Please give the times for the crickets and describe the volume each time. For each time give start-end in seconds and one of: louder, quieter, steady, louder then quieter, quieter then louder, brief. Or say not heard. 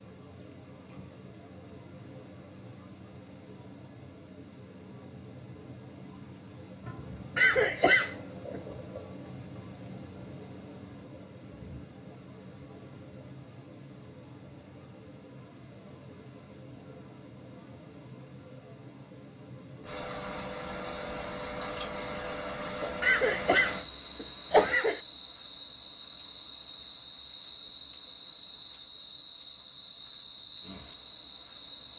0.0-31.9 steady.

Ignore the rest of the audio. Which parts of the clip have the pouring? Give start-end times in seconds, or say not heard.
not heard.